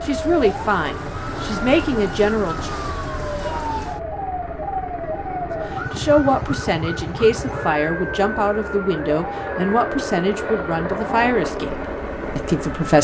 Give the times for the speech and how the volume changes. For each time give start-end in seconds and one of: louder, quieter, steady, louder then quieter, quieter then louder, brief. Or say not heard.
0.1-2.8 brief
5.9-13.0 steady.